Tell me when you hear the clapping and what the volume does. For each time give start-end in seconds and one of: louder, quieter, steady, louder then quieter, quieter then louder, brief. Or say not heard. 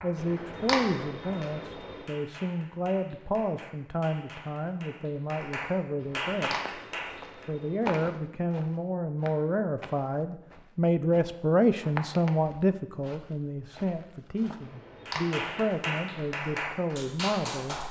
0.0-7.5 louder
15.1-17.8 brief.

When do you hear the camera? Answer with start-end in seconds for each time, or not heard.
0.1-2.1, 6.0-7.8, 14.6-15.7.